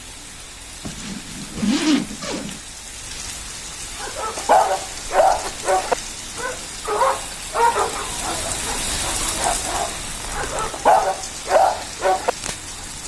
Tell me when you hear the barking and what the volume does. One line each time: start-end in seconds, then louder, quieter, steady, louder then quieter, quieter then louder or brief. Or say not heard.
4.0-12.3 quieter then louder.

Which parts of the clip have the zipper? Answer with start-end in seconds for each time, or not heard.
0.8-2.6, 5.4-6.7, 9.9-10.8.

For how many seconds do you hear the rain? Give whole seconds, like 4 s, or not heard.
13 s.